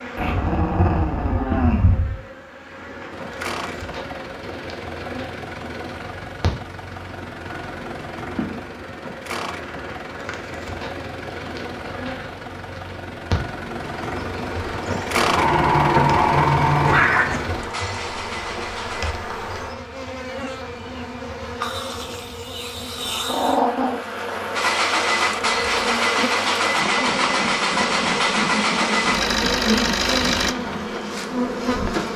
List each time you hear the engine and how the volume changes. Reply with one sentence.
You can hear the engine from 3.1 to 19.1 s, getting louder; and from 24.6 to 30.6 s, at a steady volume.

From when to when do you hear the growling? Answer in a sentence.
You can hear the growling from 0.1 to 2.1 s, from 15.3 to 17.4 s and from 23.2 to 24.0 s.